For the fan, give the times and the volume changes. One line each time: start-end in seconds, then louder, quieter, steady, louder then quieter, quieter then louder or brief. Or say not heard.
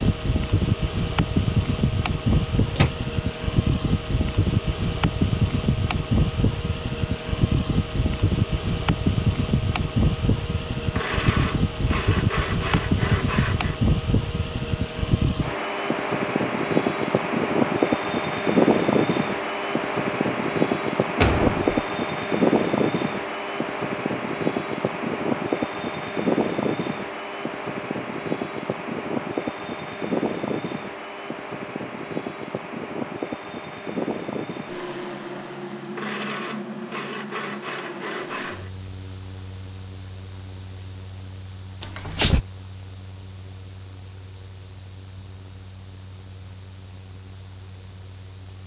0.0-48.6 quieter.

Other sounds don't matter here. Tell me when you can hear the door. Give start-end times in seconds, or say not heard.
2.3-2.9, 21.2-21.6, 41.8-42.5.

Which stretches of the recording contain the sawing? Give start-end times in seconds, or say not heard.
10.9-13.8, 36.0-38.7.